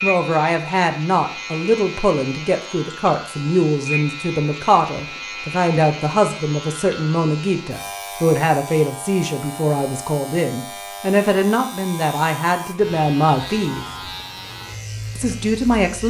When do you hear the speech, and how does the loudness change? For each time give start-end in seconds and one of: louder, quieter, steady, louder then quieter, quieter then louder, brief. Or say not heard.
0.0-13.8 steady
15.2-16.0 brief.